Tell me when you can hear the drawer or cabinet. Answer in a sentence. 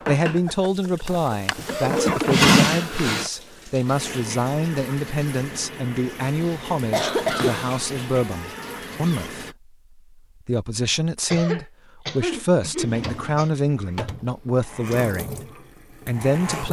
The drawer or cabinet can be heard from 1.1 to 3.3 s, from 7.2 to 9.3 s and from 12.8 to 14.3 s.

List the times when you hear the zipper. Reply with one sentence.
The zipper can't be heard in this clip.